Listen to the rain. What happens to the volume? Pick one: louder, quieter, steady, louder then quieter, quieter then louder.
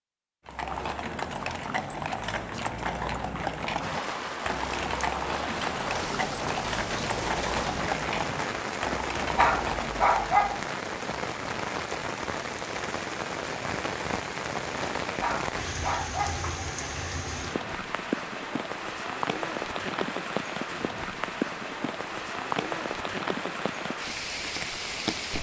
steady.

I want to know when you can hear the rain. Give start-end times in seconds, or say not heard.
3.8-25.3.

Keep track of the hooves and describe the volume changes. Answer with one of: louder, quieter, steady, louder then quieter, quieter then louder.
steady.